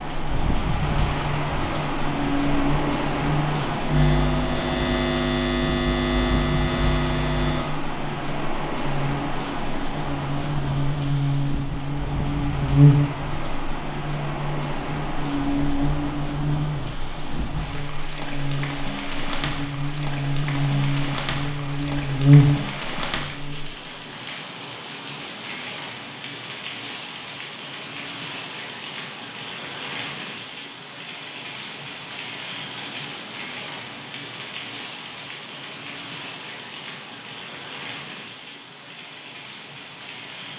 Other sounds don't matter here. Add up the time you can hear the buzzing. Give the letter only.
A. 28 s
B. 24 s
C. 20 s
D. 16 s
B.